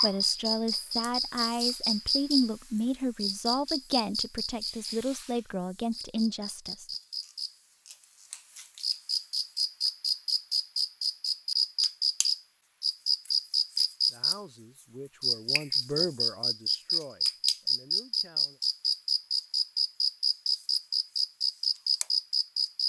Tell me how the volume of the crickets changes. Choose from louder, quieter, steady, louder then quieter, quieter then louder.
quieter then louder.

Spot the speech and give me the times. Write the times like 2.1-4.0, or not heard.
0.0-6.8, 14.1-18.6.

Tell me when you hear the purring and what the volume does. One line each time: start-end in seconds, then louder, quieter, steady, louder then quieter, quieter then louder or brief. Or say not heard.
not heard.